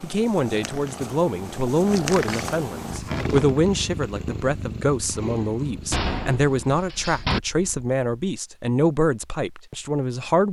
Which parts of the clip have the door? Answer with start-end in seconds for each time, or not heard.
1.9-3.5, 5.9-7.4.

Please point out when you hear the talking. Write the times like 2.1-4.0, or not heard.
0.0-10.4.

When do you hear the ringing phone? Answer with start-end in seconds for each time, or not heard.
not heard.